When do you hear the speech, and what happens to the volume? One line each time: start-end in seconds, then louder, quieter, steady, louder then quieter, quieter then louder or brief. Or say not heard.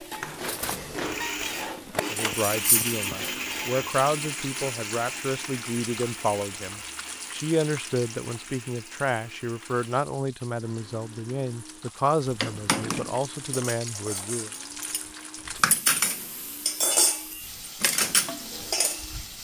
1.9-14.5 steady.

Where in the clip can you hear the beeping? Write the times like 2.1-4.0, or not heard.
0.6-1.4.